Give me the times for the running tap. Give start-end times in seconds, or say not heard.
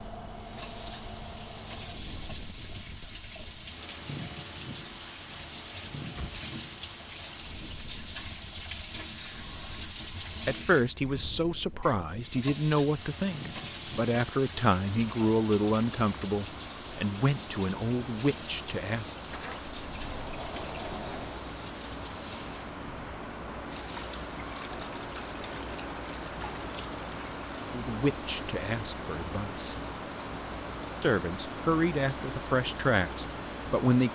0.2-34.1.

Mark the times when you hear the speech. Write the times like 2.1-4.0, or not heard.
10.4-19.1, 27.7-29.8, 31.0-34.1.